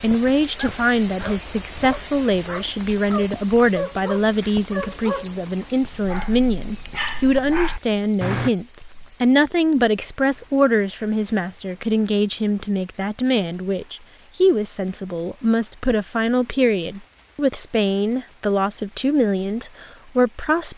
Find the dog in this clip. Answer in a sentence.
You can hear the dog from 0.6 to 8.5 s.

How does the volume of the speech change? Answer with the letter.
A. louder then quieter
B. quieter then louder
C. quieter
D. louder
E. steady
E.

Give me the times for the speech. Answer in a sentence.
The speech can be heard from 0.0 to 20.7 s.